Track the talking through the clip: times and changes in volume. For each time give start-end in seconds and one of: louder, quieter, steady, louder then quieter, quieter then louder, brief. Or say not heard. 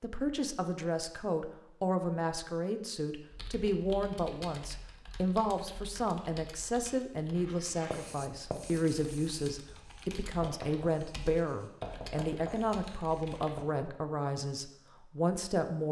0.0-15.8 steady.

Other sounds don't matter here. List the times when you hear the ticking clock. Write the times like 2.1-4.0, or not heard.
not heard.